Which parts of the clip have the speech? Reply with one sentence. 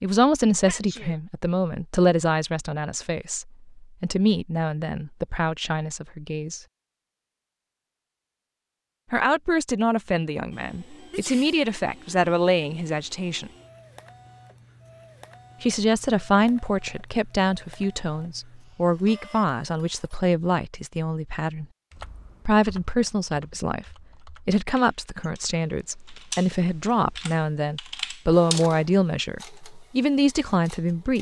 The speech can be heard from 0.0 to 6.6 s, from 9.1 to 13.5 s, from 15.6 to 21.6 s and from 22.4 to 31.1 s.